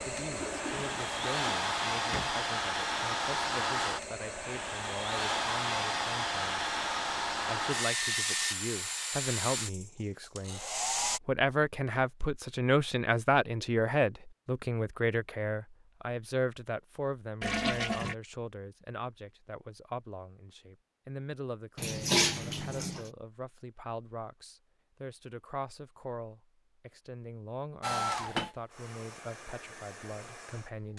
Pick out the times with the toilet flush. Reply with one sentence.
You can hear the toilet flush from 0.3 to 2.3 s, from 17.4 to 18.1 s and from 21.8 to 23.1 s.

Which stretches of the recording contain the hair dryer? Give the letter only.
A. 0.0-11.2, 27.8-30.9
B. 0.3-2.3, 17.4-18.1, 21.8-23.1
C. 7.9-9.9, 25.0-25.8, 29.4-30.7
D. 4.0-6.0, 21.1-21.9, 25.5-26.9
A.